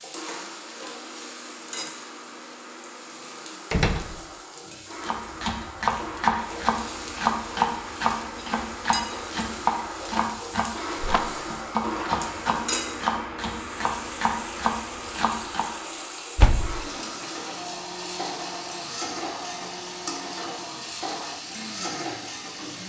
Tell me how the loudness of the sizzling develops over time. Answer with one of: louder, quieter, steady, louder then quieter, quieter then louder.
louder.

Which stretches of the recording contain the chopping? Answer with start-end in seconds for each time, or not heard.
5.0-15.7.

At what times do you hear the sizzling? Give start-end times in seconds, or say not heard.
0.0-22.8.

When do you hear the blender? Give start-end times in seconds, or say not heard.
0.1-22.8.